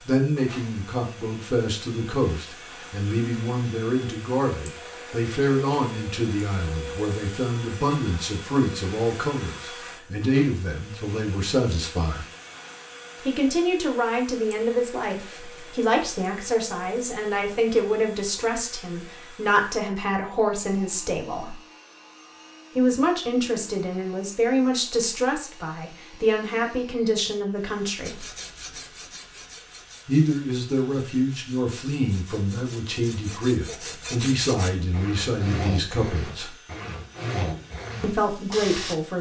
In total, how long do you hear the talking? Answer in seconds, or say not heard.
34 s.